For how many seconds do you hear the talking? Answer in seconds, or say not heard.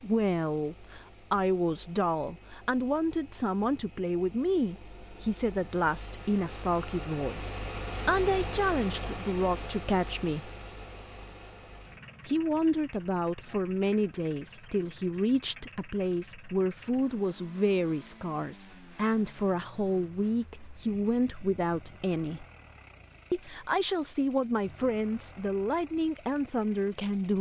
25 s.